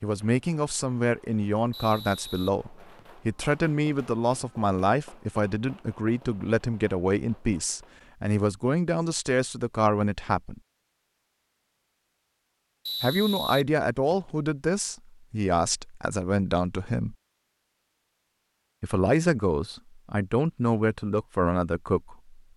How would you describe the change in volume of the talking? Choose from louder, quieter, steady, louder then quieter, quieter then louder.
steady.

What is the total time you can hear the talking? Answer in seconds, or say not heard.
18 s.